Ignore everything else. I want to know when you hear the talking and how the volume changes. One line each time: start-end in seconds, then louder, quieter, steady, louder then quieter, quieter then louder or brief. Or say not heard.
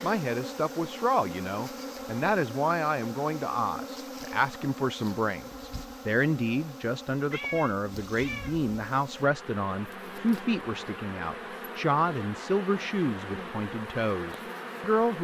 0.0-15.1 steady.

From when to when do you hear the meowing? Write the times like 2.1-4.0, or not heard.
7.3-8.6.